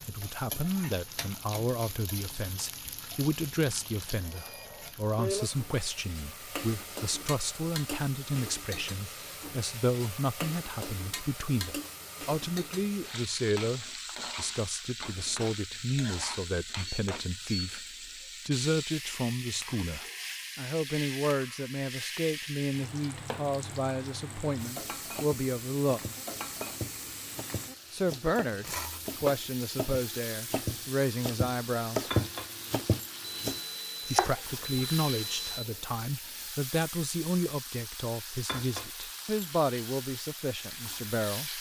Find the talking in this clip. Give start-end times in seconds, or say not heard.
0.1-26.0, 27.9-32.1, 34.0-41.5.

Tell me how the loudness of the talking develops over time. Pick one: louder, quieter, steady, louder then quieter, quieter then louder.
steady.